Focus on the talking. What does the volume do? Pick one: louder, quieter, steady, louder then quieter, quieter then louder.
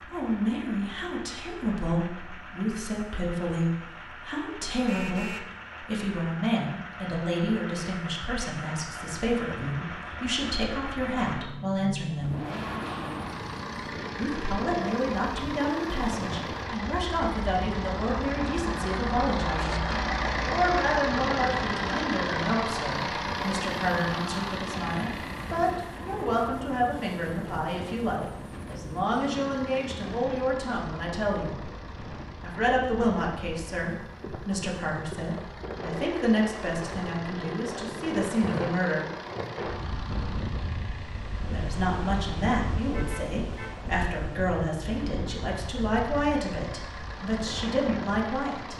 steady.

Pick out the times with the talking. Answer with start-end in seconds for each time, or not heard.
0.0-12.4, 14.2-31.6, 32.4-39.0, 41.5-48.7.